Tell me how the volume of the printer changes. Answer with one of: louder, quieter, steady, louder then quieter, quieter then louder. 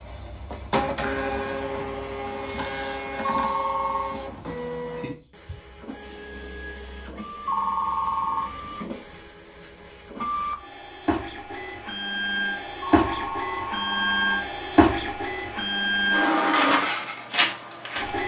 quieter then louder.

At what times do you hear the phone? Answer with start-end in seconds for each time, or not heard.
3.2-4.2, 7.5-8.4, 12.8-14.4.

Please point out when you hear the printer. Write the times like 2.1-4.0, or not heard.
0.0-18.2.